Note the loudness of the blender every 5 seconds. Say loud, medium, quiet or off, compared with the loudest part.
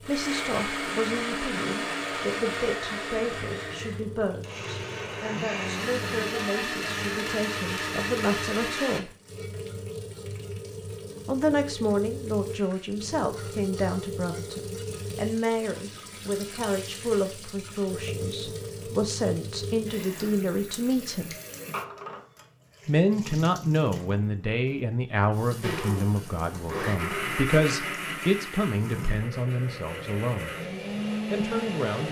loud, loud, off, off, off, loud, loud.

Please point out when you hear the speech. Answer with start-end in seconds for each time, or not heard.
0.0-9.1, 11.2-21.4, 22.9-30.5, 31.3-32.0.